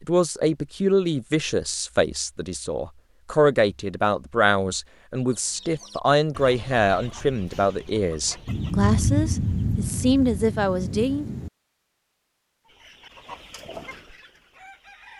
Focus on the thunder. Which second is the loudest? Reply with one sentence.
The volume of the thunder peaks at 9 seconds.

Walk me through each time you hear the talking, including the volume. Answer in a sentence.
You can hear the talking from 0.0 to 11.2 s, at a steady volume.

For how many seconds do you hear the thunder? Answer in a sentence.
You can hear the thunder for 3 seconds altogether.